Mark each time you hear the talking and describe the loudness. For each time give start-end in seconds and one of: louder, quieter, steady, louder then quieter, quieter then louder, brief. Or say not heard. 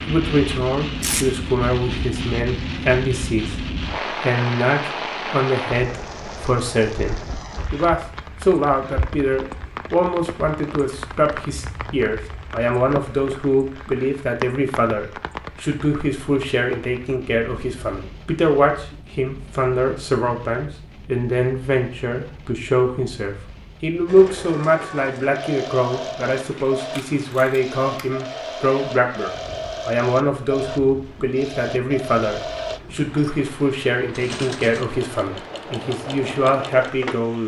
0.1-37.4 steady.